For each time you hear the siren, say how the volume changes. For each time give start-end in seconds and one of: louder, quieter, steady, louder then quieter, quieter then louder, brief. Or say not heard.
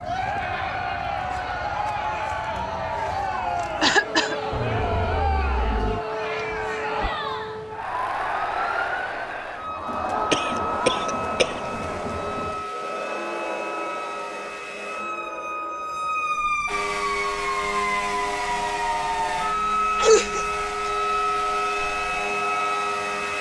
0.0-23.3 louder.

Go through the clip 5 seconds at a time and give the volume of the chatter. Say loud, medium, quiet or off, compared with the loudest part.
loud, loud, loud, quiet, quiet.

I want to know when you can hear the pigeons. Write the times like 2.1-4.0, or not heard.
not heard.